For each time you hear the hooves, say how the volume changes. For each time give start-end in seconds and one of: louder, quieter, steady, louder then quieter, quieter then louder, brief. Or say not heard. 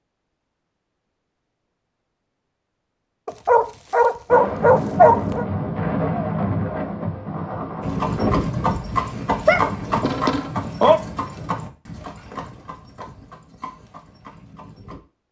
7.8-15.0 quieter.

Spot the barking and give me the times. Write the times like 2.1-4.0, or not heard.
3.2-5.5, 9.4-11.0.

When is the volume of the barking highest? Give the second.
5 s.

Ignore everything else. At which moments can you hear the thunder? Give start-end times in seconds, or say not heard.
4.3-8.3.